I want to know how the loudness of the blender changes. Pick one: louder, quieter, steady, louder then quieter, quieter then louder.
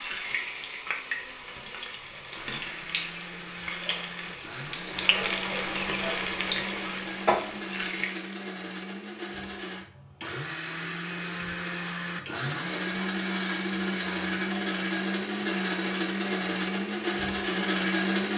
louder.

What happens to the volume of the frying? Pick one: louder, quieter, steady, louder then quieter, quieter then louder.
louder.